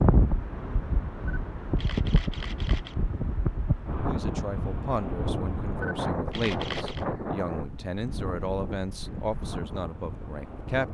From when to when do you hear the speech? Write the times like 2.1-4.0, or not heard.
4.0-10.9.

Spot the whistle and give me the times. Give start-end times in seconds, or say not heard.
not heard.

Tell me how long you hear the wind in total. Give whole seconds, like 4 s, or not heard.
11 s.